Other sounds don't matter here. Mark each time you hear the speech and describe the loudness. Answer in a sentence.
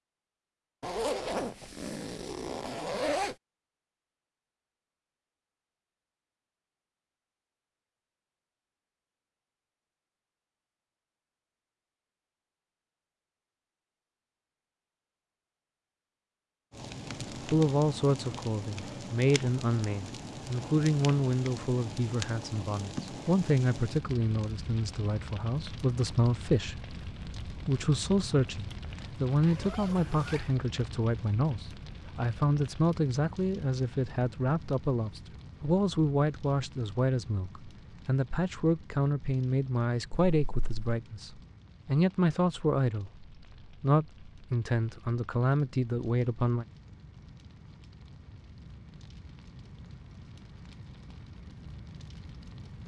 You can hear the speech from 17.4 to 46.6 s, at a steady volume.